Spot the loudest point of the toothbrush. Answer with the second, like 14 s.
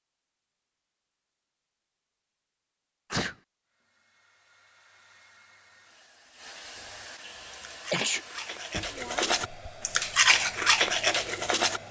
10 s.